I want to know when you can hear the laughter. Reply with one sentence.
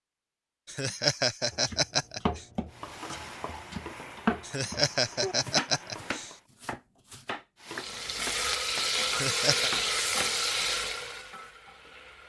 You can hear the laughter from 0.7 to 2.5 s, from 4.4 to 6.3 s and from 9.1 to 9.7 s.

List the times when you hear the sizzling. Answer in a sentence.
The sizzling can be heard from 2.7 to 6.5 s and from 7.6 to 12.2 s.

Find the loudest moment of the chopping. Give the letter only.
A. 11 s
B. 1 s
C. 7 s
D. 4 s
D.